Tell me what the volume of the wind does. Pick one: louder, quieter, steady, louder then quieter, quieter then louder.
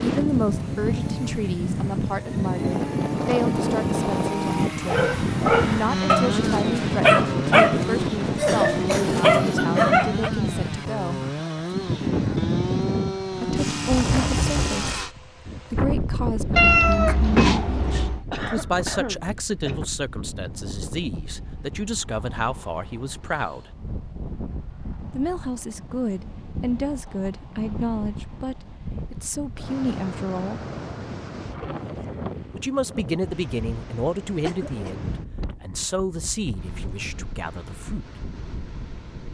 quieter.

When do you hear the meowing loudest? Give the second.
17 s.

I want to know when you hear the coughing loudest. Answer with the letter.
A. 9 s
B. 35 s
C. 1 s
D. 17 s
A.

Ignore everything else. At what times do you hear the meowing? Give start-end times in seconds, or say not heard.
16.6-18.2.